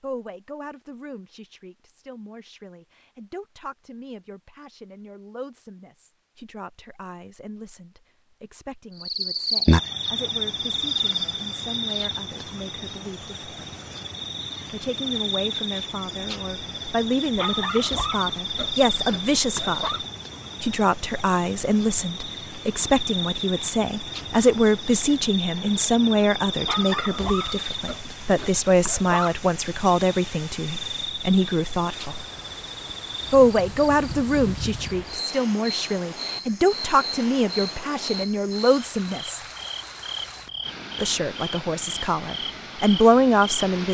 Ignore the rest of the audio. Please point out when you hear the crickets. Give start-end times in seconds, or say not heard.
8.9-43.8.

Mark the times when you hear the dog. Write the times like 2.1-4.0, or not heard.
17.4-20.0, 26.6-29.4.